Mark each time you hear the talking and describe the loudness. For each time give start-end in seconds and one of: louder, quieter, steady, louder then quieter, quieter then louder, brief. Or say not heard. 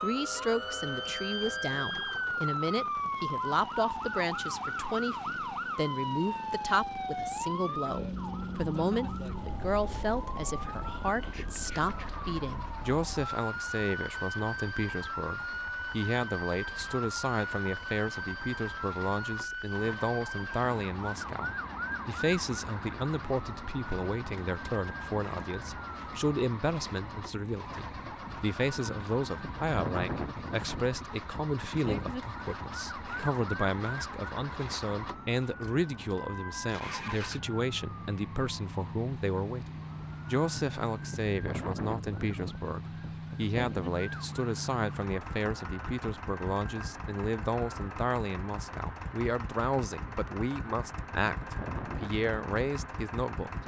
0.0-53.5 steady.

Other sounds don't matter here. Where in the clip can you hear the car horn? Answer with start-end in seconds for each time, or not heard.
not heard.